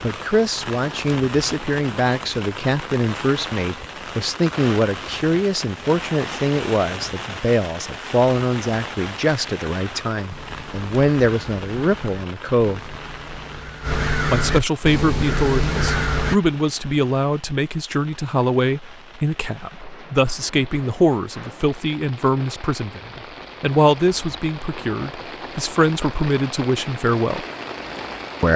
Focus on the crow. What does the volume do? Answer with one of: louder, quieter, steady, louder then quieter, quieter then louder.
louder.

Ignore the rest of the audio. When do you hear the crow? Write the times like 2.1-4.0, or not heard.
10.3-16.4.